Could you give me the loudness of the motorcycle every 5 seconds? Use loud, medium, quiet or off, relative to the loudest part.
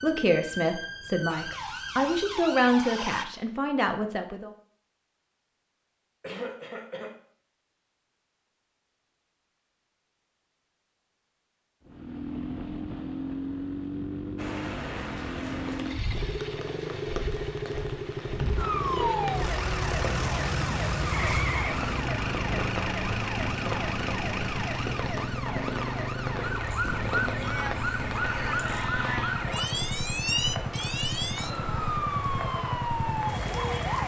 off, off, loud, loud, loud, loud, loud.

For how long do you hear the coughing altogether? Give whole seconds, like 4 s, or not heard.
2 s.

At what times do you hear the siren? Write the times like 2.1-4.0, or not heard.
0.0-3.2, 18.6-34.0.